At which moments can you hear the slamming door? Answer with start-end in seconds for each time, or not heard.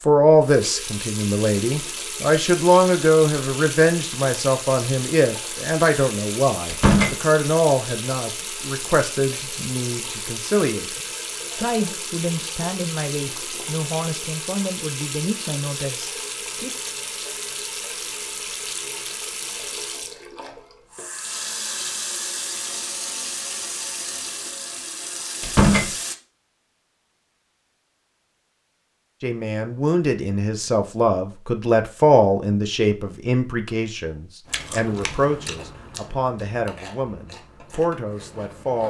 6.7-7.2, 25.4-25.9.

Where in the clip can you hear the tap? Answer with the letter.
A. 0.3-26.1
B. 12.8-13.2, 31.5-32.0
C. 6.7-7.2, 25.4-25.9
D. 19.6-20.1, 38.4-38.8
A.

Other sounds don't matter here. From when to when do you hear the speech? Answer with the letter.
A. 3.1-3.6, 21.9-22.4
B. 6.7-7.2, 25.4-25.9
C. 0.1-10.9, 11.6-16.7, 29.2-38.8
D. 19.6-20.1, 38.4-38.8
C.